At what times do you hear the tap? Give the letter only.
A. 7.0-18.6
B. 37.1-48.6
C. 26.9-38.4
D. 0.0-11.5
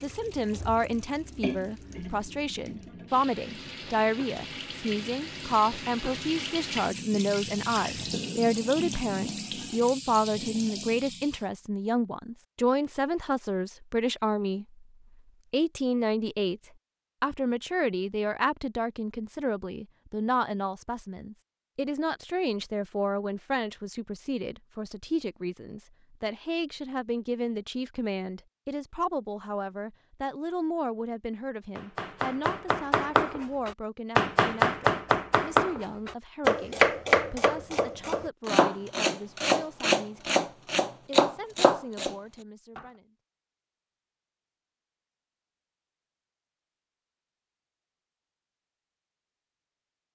D.